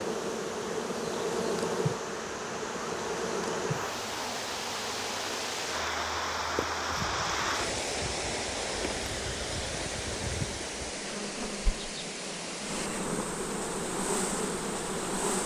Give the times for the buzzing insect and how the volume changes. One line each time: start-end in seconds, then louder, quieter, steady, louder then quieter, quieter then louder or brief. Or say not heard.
0.0-15.4 quieter then louder.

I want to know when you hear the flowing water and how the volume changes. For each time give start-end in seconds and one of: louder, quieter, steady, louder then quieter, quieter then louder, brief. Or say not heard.
0.0-15.2 louder then quieter.